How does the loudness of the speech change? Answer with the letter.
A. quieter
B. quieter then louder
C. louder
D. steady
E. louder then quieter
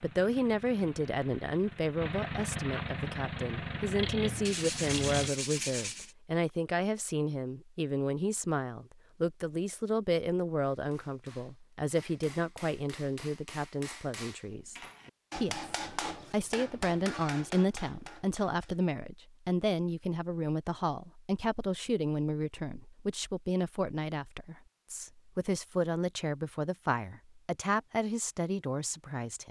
D.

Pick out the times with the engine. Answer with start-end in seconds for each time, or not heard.
0.0-5.3.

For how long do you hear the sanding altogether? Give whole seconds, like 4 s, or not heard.
2 s.